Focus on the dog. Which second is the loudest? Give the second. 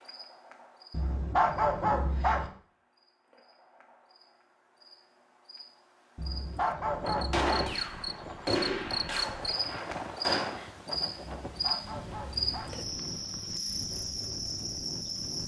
2 s.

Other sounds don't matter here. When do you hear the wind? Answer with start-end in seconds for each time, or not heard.
6.9-15.4.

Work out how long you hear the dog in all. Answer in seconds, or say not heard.
5 s.